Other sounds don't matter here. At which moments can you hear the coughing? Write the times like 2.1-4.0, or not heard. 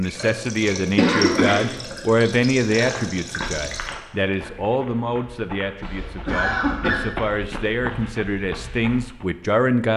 0.9-1.6, 5.8-7.0.